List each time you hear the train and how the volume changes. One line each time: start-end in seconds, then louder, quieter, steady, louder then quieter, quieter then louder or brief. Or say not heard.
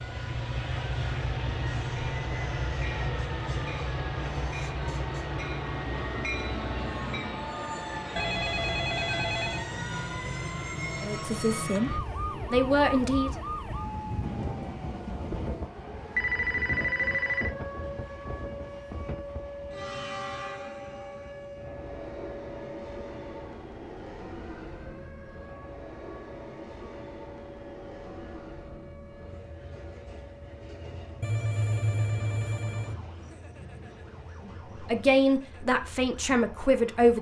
0.0-37.1 quieter.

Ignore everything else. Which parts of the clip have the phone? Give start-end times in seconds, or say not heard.
8.2-9.7, 16.1-17.5, 31.2-33.0.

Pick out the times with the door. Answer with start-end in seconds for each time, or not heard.
not heard.